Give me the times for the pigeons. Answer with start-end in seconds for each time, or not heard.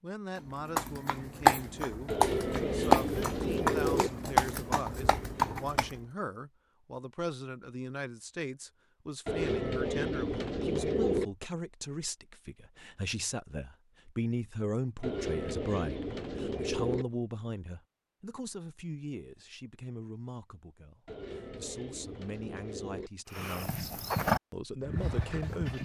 2.0-4.1, 9.2-11.2, 15.0-17.1, 21.1-23.1.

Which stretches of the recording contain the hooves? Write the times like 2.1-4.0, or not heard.
0.7-6.0, 23.3-25.7.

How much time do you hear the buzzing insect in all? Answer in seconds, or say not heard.
not heard.